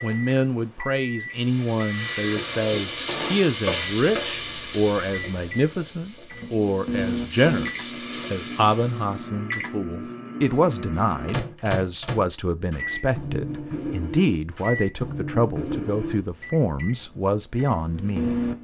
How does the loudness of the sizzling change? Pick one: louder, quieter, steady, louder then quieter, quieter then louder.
quieter then louder.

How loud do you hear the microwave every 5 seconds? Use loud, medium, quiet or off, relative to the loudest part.
medium, loud, loud, loud.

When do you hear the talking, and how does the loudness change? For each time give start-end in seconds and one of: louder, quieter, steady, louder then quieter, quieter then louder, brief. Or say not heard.
0.0-18.4 steady.